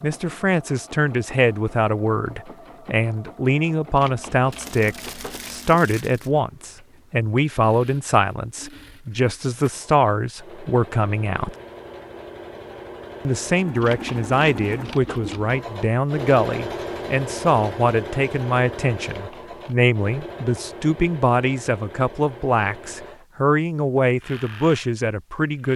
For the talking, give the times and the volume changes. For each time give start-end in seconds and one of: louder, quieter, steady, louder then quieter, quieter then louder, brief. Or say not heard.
0.0-11.6 steady
13.2-25.7 steady.